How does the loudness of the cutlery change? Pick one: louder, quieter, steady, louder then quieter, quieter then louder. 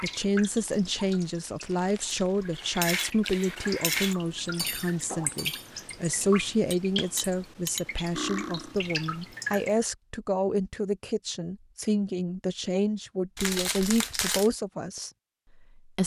quieter then louder.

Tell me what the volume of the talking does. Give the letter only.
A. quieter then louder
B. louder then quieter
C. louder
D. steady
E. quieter
D.